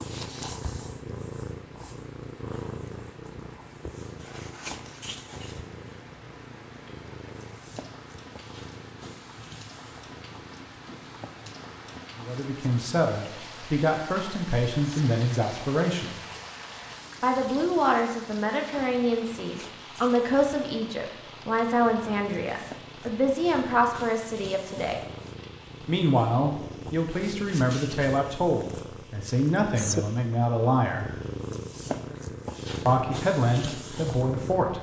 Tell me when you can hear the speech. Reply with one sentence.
The speech can be heard from 12.2 to 16.1 s, from 17.2 to 25.0 s, from 25.9 to 31.1 s and from 32.9 to 34.7 s.